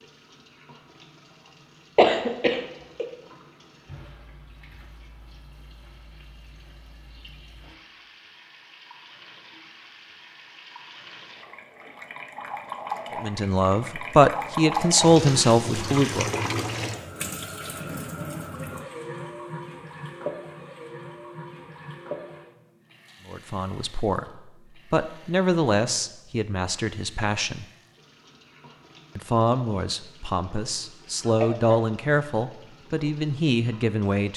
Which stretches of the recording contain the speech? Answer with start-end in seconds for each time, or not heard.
13.2-16.3, 23.2-27.6, 29.1-34.3.